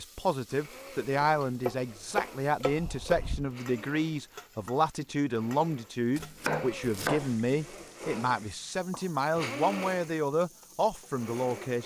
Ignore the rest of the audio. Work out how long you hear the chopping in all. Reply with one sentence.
You can hear the chopping for 4 seconds altogether.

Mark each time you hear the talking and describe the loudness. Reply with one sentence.
The talking can be heard from 0.0 to 11.8 s, at a steady volume.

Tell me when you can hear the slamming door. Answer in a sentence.
You can't hear the slamming door here.